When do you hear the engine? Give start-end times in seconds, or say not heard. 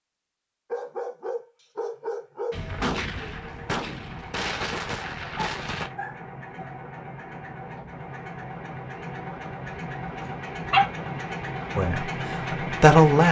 3.1-13.2.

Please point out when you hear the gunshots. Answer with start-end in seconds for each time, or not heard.
2.5-5.9.